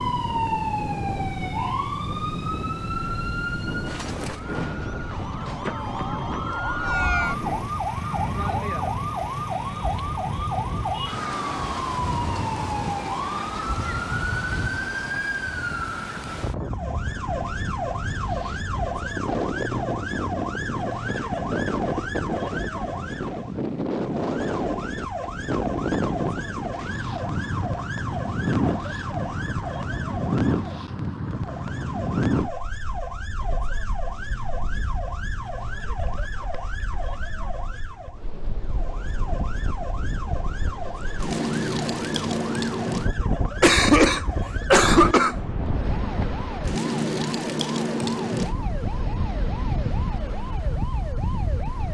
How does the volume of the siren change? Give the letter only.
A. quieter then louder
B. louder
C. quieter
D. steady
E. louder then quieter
C.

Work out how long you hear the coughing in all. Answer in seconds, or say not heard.
2 s.